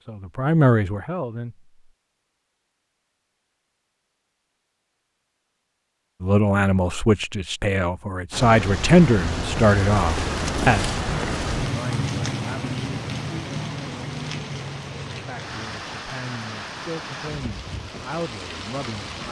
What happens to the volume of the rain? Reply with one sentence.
The loudness of the rain goes down.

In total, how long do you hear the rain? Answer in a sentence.
You can hear the rain for 11 seconds altogether.